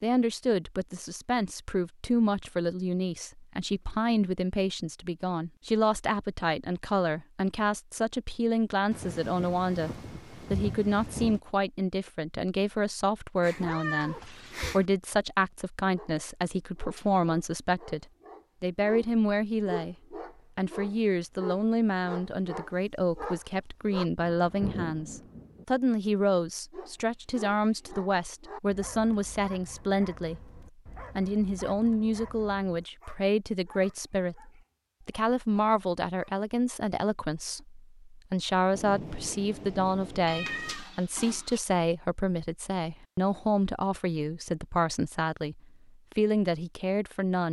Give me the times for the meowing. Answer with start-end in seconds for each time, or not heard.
13.4-14.9, 40.2-41.6.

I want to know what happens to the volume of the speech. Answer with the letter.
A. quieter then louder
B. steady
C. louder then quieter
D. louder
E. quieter
B.